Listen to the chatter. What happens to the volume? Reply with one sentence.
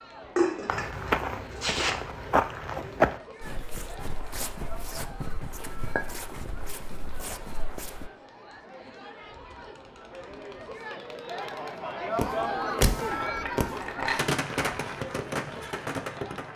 The loudness of the chatter goes up.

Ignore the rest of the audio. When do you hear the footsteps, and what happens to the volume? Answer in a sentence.
The footsteps can be heard from 0.7 to 8.1 s, getting quieter.